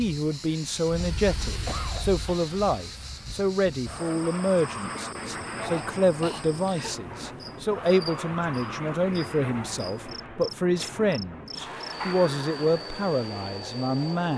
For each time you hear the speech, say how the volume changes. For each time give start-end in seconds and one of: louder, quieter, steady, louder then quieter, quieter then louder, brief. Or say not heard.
0.0-14.3 steady.